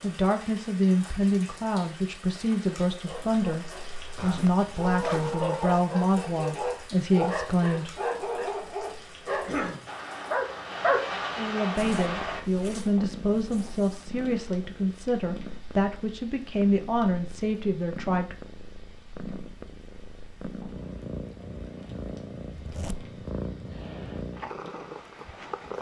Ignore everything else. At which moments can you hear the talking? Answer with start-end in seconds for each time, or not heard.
0.0-8.0, 11.3-18.4.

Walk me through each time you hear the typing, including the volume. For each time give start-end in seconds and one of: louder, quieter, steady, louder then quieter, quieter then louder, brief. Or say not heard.
not heard.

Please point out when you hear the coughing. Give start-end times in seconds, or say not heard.
9.3-9.8.